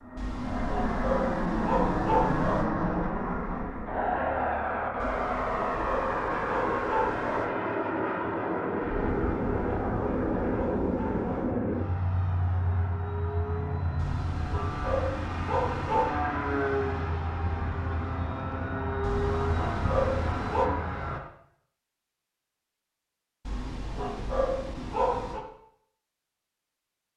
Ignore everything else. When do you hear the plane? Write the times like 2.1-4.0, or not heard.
0.0-21.2.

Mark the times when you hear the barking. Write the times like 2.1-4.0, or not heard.
0.1-2.6, 5.0-7.5, 9.1-11.6, 13.9-16.1, 19.0-20.7, 23.4-25.4.